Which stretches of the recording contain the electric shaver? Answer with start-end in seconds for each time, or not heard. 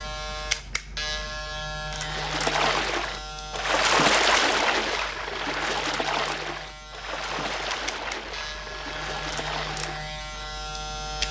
0.0-11.2.